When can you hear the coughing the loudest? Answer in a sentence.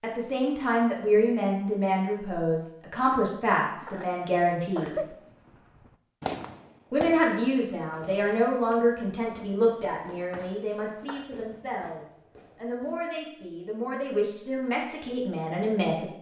The loudest moment of the coughing is at 5 seconds.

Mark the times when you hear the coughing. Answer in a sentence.
The coughing can be heard from 3.1 to 5.1 s and from 10.3 to 11.2 s.